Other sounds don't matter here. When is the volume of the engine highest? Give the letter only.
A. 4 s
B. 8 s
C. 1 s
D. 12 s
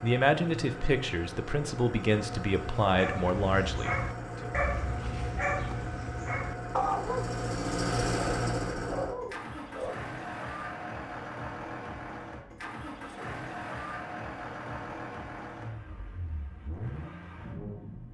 B.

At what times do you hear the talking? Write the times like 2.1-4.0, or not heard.
0.0-4.5.